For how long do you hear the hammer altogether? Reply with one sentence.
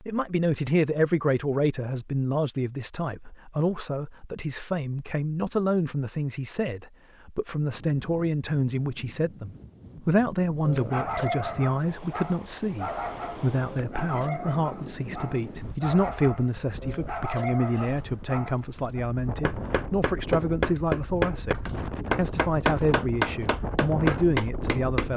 The hammer can be heard for 6 seconds in total.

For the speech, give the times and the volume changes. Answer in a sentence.
You can hear the speech from 0.0 to 25.1 s, at a steady volume.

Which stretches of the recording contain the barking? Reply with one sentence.
You can hear the barking from 10.7 to 19.0 s.